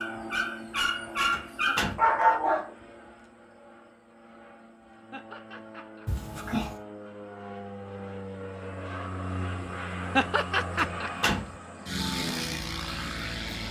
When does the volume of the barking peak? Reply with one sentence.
The loudest moment of the barking is at 2 seconds.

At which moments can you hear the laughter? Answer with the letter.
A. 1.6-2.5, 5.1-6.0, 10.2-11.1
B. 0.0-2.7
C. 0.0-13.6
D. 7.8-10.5
A.